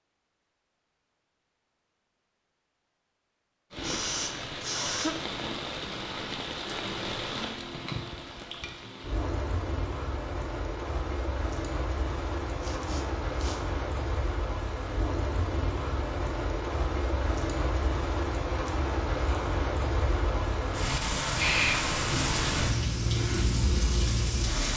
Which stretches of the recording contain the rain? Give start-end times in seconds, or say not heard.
3.7-24.7.